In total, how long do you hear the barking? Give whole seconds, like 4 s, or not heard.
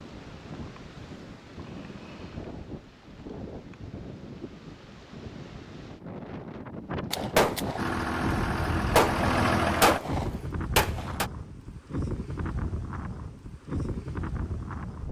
not heard.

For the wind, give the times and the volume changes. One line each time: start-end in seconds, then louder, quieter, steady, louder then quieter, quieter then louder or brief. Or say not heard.
0.0-15.0 louder.